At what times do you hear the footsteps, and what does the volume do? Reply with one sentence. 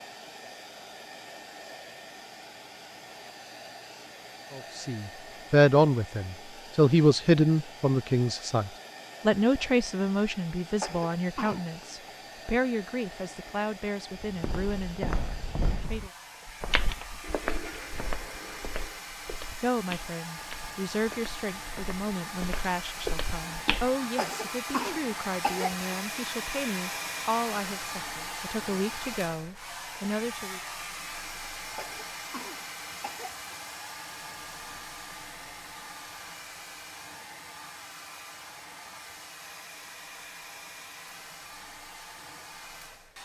You can hear the footsteps from 14.2 to 23.9 s, getting quieter then louder.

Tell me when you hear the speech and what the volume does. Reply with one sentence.
The speech can be heard from 4.5 to 16.1 s, getting quieter; and from 19.6 to 30.6 s, at a steady volume.